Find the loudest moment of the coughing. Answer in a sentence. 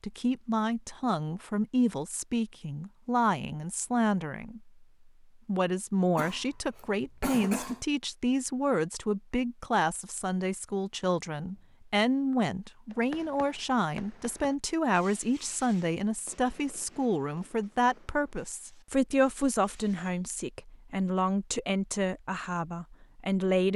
The loudest moment of the coughing is at 7 seconds.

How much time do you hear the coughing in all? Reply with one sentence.
You can hear the coughing for 2 seconds altogether.